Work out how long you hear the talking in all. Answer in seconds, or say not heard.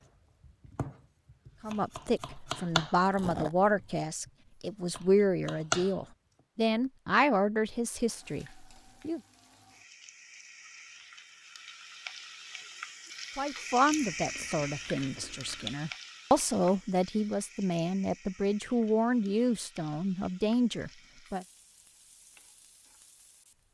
16 s.